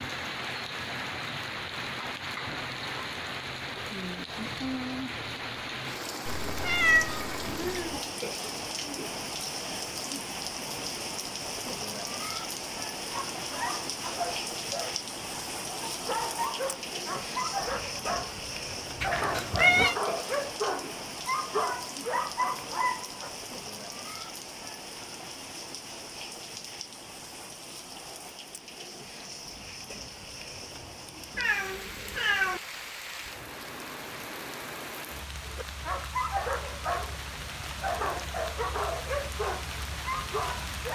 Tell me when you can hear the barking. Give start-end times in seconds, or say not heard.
13.1-23.3, 35.5-40.9.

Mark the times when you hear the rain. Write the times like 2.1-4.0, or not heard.
0.0-40.9.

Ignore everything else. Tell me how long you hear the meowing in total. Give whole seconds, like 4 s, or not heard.
4 s.